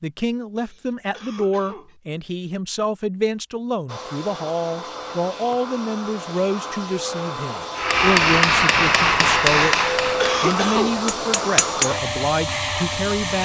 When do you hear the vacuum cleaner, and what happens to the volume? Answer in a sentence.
You can hear the vacuum cleaner from 3.9 to 13.4 s, getting louder.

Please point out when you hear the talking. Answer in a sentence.
You can hear the talking from 0.0 to 13.4 s.